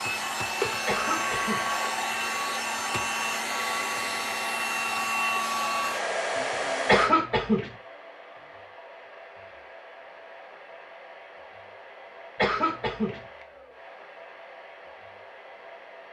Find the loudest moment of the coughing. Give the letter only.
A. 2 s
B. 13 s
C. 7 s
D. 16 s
C.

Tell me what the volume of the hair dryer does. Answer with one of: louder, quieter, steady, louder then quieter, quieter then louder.
quieter.